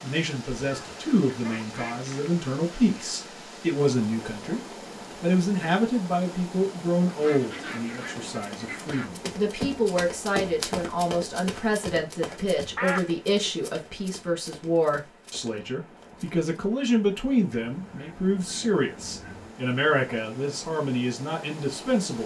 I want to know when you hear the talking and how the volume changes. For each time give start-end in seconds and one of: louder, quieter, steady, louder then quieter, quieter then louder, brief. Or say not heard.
0.0-22.2 steady.